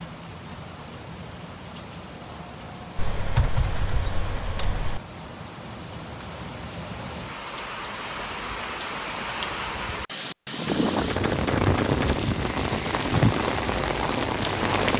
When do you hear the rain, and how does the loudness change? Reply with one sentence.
You can hear the rain from 0.0 to 14.9 s, getting louder.